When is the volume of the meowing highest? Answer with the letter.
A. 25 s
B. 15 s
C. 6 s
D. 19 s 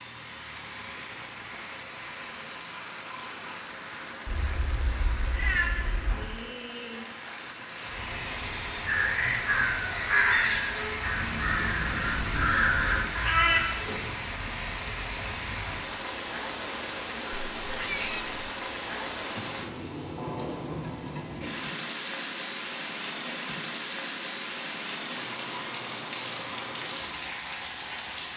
C.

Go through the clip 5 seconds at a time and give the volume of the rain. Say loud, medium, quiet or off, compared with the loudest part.
medium, loud, loud, loud, loud, loud.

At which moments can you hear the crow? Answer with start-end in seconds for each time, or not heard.
8.8-14.0.